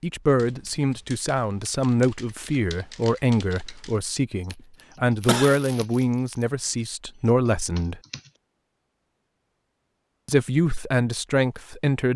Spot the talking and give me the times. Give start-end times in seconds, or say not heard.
0.0-8.0, 10.2-12.1.